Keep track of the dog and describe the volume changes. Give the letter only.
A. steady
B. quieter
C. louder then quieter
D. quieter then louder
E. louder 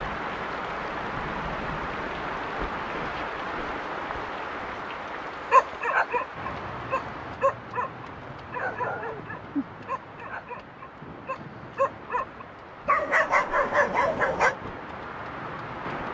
D.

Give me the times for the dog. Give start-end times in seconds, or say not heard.
5.5-14.6.